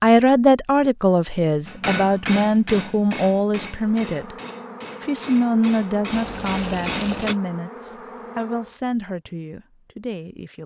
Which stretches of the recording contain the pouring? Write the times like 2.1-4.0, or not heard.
6.1-7.4.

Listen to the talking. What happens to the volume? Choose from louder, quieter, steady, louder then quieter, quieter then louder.
quieter.